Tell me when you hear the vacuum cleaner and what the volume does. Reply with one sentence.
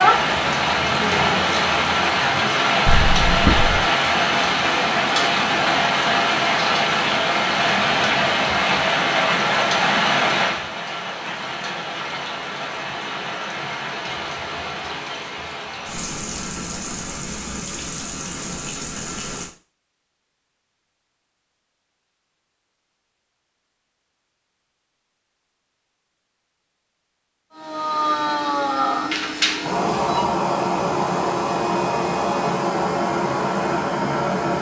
You can hear the vacuum cleaner from 27.5 to 34.5 s, at a steady volume.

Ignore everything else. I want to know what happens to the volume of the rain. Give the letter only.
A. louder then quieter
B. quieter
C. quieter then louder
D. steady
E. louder
B.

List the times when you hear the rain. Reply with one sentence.
You can hear the rain from 0.0 to 19.5 s.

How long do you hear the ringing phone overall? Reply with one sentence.
You can hear the ringing phone for 2 seconds altogether.